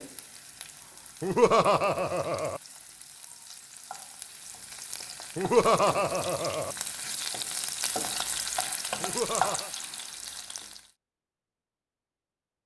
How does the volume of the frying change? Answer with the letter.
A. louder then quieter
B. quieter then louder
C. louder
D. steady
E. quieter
C.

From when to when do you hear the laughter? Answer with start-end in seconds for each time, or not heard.
1.2-2.6, 5.3-6.8, 9.0-9.7.